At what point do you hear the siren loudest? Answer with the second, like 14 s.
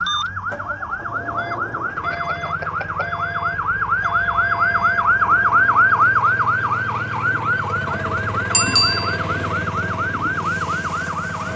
6 s.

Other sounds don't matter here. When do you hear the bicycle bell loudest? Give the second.
9 s.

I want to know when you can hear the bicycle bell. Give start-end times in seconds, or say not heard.
2.1-3.2, 8.5-9.2.